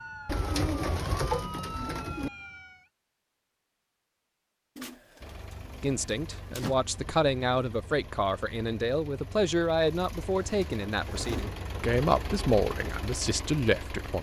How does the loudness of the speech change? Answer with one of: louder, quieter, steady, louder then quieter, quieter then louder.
steady.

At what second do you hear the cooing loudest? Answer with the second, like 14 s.
1 s.